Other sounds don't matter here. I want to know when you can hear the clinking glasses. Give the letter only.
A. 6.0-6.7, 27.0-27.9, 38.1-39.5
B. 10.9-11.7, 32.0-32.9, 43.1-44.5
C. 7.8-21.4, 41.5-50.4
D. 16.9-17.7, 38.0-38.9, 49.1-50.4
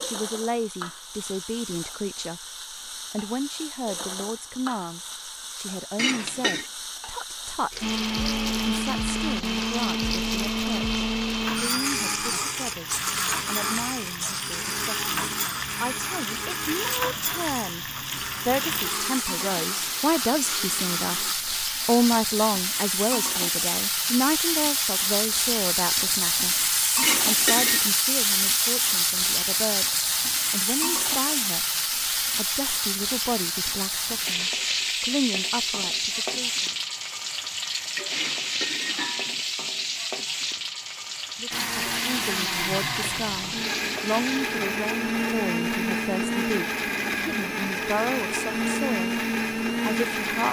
A.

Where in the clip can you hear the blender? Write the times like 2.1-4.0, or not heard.
7.8-21.4, 41.5-50.4.